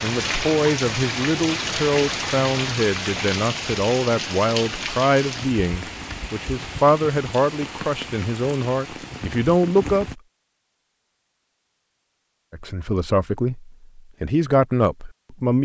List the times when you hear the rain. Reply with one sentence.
You can hear the rain from 0.0 to 10.2 s.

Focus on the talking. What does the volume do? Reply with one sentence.
The loudness of the talking stays about the same.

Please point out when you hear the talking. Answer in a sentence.
You can hear the talking from 0.0 to 10.2 s and from 12.5 to 15.5 s.